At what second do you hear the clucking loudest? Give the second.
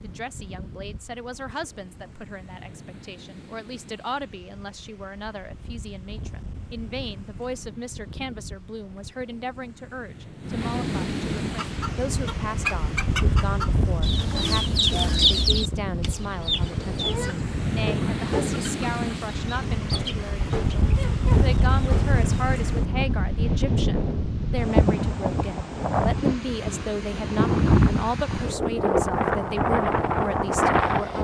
15 s.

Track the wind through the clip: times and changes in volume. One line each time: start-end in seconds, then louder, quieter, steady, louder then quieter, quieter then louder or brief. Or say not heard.
0.0-31.1 louder.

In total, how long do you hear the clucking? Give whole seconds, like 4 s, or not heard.
11 s.